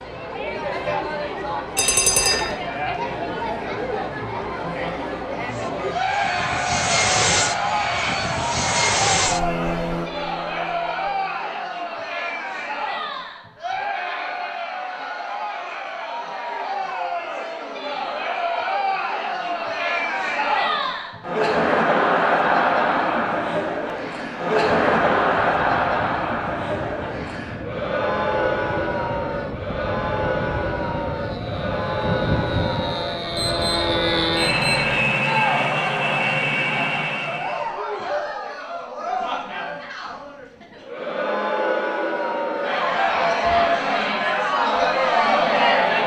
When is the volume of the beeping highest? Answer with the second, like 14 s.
2 s.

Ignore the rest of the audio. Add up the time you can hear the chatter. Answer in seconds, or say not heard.
46 s.